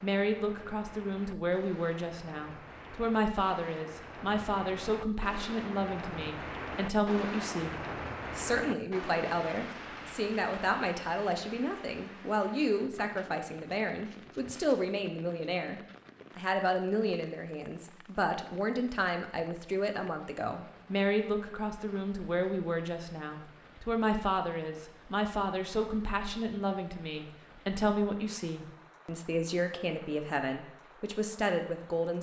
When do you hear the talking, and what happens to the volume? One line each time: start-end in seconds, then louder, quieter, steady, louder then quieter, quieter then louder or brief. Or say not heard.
0.0-32.1 steady.